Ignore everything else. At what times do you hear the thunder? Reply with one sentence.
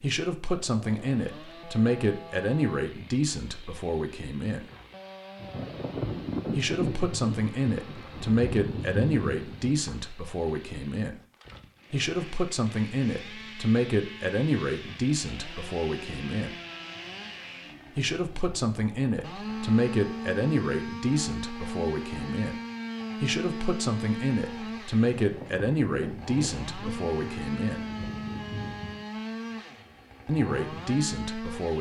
The thunder can be heard from 5.4 to 9.8 s and from 25.1 to 29.1 s.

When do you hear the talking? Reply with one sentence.
You can hear the talking from 0.0 to 4.7 s, from 6.5 to 11.2 s, from 11.9 to 16.6 s, from 17.9 to 22.6 s, from 23.2 to 27.9 s and from 30.2 to 31.7 s.